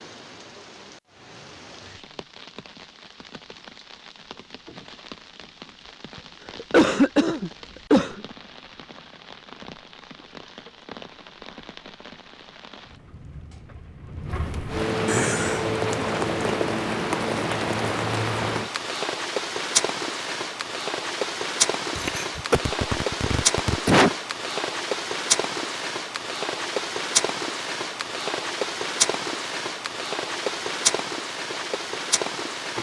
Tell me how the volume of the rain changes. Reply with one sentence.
The volume of the rain goes up.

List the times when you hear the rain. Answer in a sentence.
You can hear the rain from 0.0 to 32.7 s.